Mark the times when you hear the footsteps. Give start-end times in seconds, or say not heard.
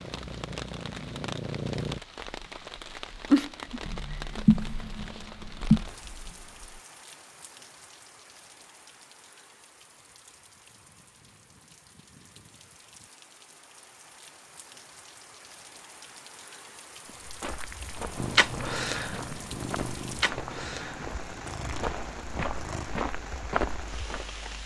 17.1-24.3.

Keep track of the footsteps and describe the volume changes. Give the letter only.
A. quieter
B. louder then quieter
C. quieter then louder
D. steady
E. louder
E.